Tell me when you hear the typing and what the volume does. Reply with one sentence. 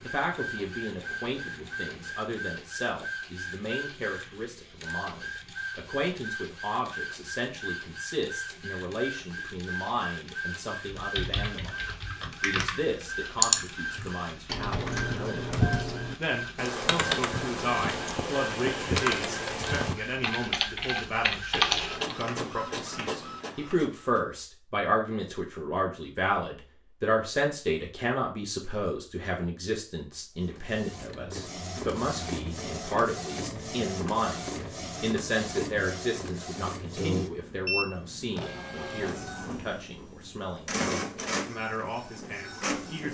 The typing can be heard briefly from 10.8 to 12.8 s; and from 13.4 to 22.2 s, getting louder.